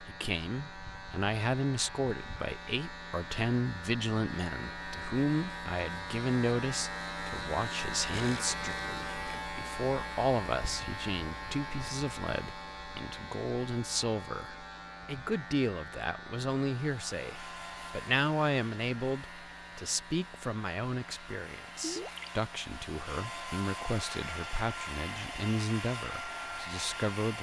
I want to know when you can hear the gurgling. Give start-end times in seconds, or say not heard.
8.1-9.4, 21.8-22.3.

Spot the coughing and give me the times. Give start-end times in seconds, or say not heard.
not heard.